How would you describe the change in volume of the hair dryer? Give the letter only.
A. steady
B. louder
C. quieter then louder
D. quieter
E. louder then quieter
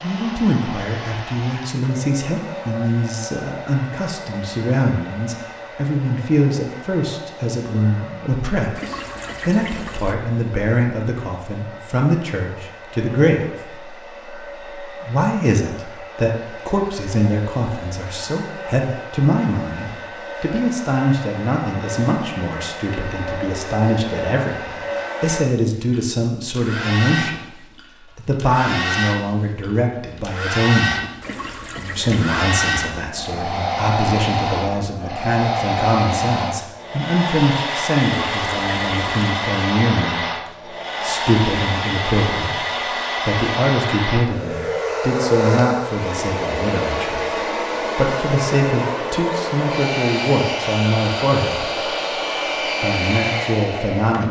B.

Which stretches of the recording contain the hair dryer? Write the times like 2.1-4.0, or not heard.
0.0-54.2.